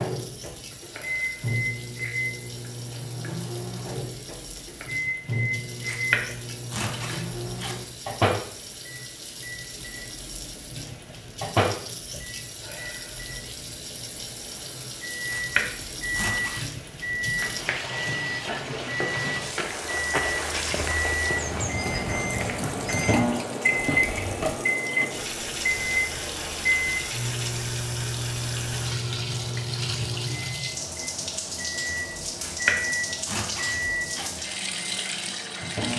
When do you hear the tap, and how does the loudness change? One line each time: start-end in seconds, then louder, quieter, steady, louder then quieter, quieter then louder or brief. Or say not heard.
0.0-35.9 louder.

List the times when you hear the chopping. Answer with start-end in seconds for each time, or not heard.
5.8-7.8, 15.3-16.7, 32.4-34.3.